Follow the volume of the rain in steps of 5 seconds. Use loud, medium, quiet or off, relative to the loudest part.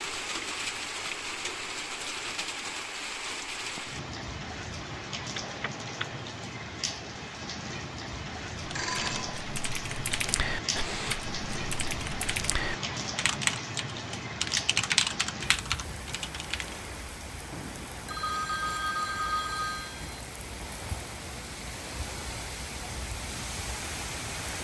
loud, loud, loud, medium, loud.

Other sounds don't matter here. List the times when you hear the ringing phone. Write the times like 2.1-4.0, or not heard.
5.3-6.2, 8.7-9.4, 17.5-20.2.